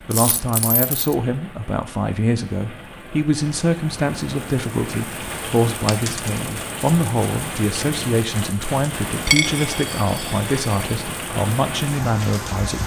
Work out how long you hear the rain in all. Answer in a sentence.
The rain can be heard for 13 seconds in total.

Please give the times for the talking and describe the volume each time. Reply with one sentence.
The talking can be heard from 0.1 to 12.8 s, at a steady volume.